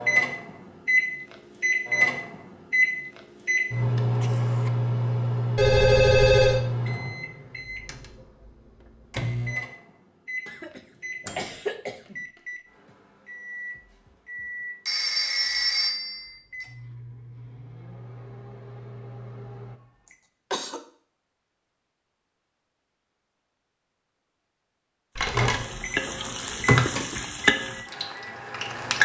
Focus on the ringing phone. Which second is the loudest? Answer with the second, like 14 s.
6 s.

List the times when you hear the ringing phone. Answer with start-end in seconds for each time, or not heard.
5.5-6.6, 14.8-16.6, 25.1-25.6.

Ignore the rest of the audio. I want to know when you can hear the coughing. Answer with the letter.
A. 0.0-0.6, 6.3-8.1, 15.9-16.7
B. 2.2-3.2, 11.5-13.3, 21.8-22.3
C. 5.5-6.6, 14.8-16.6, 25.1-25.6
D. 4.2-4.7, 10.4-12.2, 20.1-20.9
D.